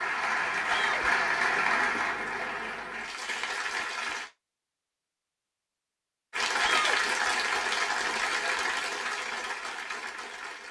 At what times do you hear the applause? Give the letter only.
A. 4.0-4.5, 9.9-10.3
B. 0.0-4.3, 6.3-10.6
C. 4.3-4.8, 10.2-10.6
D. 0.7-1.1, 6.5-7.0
B.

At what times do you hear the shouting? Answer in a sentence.
You can hear the shouting from 0.7 to 1.1 s and from 6.5 to 7.0 s.